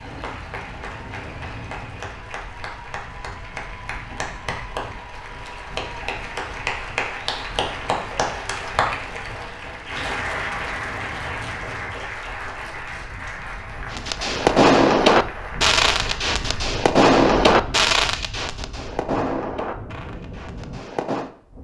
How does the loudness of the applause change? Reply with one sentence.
The volume of the applause goes up, then down.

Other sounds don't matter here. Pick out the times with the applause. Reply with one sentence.
The applause can be heard from 0.0 to 16.6 s.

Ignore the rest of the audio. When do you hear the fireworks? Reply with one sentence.
You can hear the fireworks from 13.9 to 21.3 s.